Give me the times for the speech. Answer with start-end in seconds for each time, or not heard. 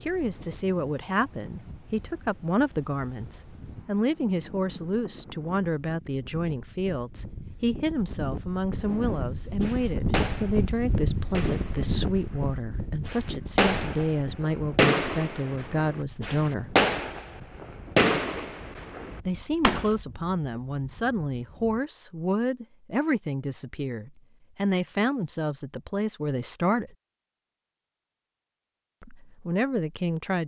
0.0-16.8, 19.2-26.9, 29.0-30.4.